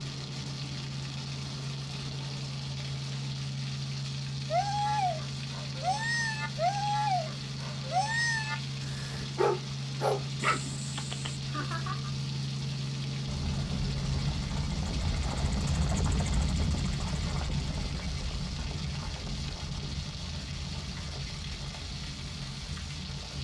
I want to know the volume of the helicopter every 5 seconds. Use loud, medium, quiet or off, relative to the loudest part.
loud, loud, loud, loud, medium.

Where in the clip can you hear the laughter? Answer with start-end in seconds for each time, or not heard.
11.4-12.1.